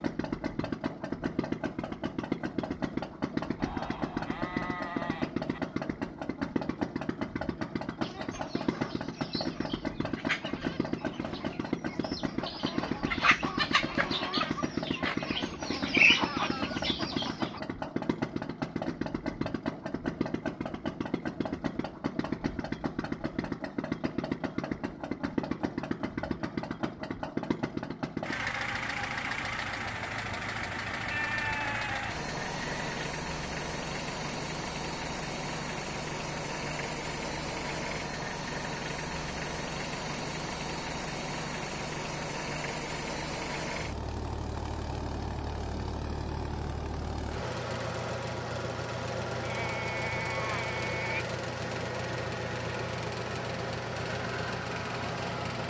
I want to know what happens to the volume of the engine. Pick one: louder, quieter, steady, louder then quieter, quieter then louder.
steady.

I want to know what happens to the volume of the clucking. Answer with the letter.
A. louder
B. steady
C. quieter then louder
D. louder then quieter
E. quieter
A.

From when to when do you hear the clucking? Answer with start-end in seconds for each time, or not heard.
8.0-17.6.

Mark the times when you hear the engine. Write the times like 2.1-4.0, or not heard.
0.0-55.6.